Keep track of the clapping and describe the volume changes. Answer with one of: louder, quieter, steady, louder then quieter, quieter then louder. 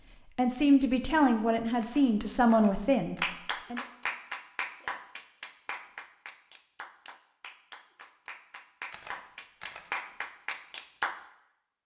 quieter then louder.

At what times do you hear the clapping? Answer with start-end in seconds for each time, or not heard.
3.2-11.2.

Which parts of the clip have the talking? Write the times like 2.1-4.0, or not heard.
0.2-3.8.